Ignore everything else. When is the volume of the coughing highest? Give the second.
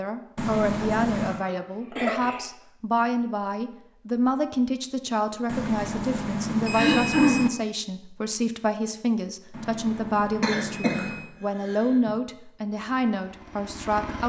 7 s.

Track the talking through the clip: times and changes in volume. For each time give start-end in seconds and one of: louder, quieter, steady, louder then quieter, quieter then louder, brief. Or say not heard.
0.0-14.2 steady.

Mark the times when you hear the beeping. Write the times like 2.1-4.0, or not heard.
0.3-1.4, 5.5-7.5, 9.5-11.3.